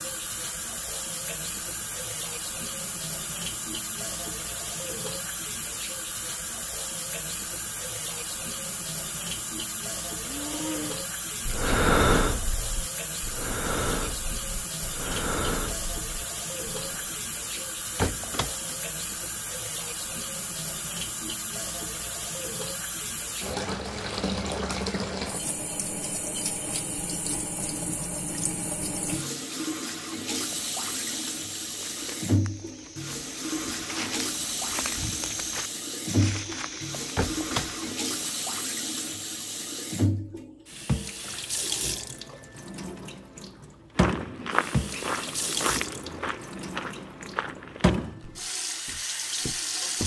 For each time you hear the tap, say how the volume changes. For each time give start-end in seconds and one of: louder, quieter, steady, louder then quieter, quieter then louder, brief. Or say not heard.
0.0-50.0 steady.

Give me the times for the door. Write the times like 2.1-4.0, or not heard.
17.6-18.8, 36.7-37.8.